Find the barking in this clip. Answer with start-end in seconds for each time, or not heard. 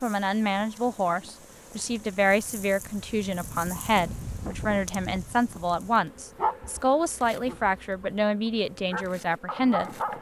6.3-10.1.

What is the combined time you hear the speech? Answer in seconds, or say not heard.
10 s.